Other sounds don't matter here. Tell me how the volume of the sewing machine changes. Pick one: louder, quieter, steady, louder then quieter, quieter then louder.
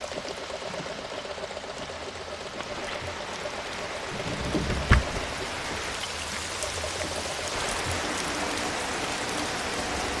steady.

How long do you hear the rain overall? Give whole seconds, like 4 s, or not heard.
10 s.